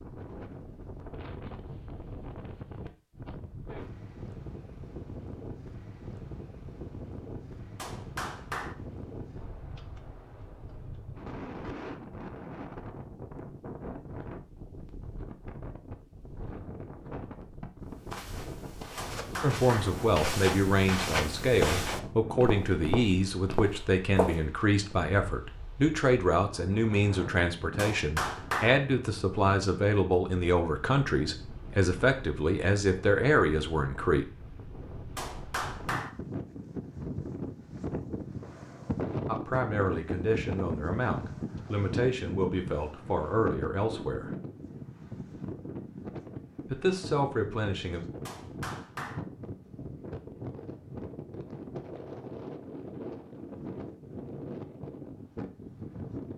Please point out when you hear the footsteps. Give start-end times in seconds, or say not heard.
17.9-24.4.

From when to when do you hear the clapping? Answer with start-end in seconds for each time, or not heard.
7.8-8.8, 18.9-19.9, 27.8-28.8, 35.1-36.1, 48.2-49.2.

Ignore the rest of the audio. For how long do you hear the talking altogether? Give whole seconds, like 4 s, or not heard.
21 s.